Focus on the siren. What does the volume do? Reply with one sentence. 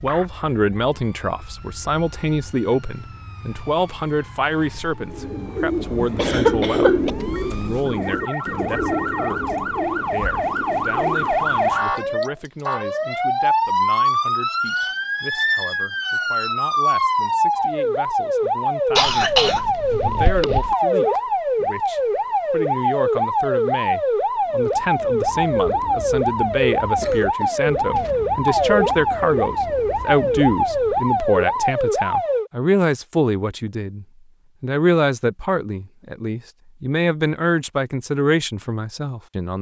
The volume of the siren goes up.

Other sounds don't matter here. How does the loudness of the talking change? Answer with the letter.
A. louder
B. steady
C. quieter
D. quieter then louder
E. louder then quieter
D.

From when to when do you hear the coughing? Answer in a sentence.
You can hear the coughing from 6.0 to 7.1 s, from 18.9 to 20.8 s and from 26.9 to 28.1 s.